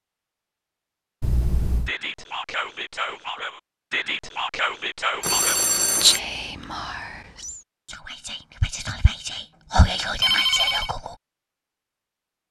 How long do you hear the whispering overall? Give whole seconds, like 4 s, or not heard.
9 s.